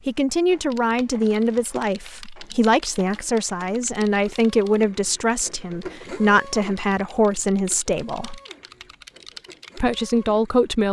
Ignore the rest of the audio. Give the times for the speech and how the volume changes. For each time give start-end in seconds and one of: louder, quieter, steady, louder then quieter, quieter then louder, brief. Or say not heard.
0.1-8.4 steady
9.8-10.8 brief.